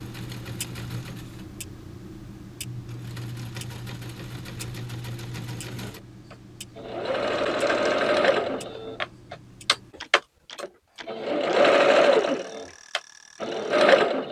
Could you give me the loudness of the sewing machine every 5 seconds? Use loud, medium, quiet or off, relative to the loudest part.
quiet, medium, loud.